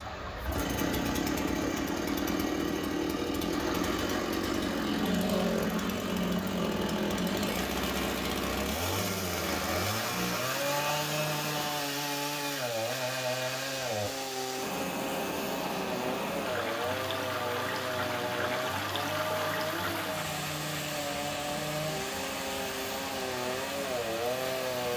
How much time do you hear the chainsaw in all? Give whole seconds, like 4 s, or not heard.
25 s.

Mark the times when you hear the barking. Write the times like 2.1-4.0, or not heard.
not heard.